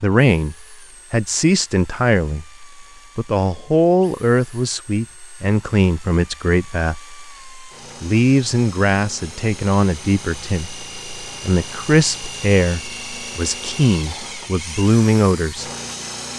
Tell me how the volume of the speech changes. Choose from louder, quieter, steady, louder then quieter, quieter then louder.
steady.